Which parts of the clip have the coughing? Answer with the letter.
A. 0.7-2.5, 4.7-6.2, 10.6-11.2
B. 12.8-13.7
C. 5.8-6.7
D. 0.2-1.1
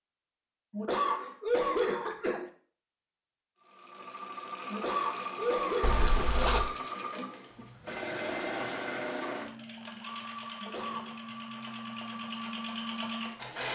A.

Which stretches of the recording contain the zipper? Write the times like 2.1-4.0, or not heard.
5.8-6.7.